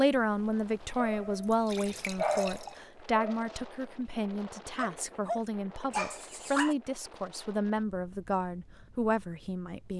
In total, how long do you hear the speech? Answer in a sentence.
You can hear the speech for 10 seconds altogether.